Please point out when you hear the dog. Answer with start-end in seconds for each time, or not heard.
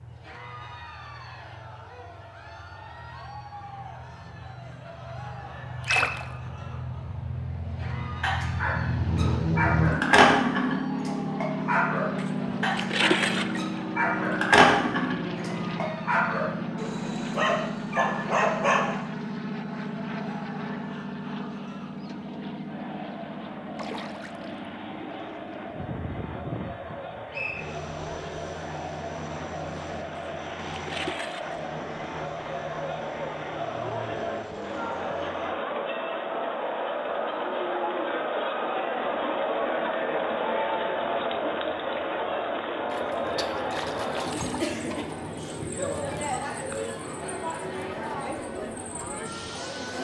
8.2-18.8.